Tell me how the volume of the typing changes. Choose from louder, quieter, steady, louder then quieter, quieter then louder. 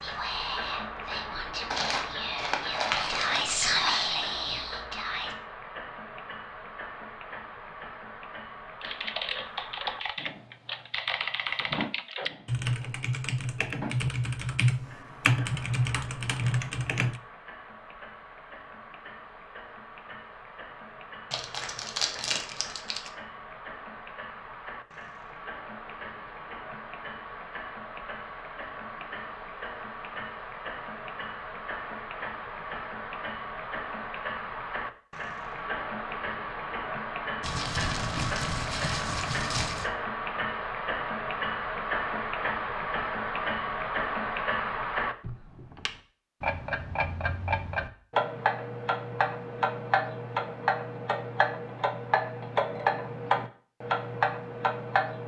louder.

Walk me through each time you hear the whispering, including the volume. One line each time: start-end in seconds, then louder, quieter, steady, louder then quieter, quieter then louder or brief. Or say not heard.
0.0-5.3 louder then quieter.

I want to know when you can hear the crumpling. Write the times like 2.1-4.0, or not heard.
1.7-3.7, 21.3-23.1, 37.4-39.9.